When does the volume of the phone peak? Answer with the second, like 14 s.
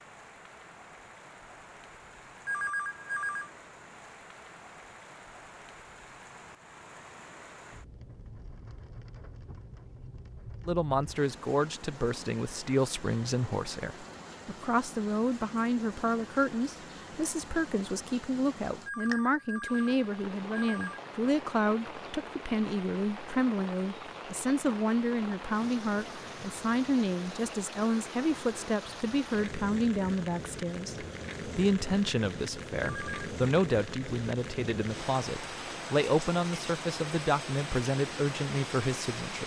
3 s.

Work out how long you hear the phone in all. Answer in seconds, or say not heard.
4 s.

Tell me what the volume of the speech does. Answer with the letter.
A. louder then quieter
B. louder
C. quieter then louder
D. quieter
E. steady
E.